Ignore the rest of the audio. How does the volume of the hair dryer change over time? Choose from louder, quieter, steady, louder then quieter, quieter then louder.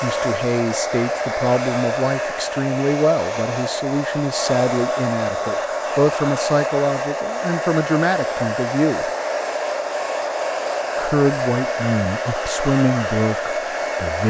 steady.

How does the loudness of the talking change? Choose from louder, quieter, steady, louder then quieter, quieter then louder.
steady.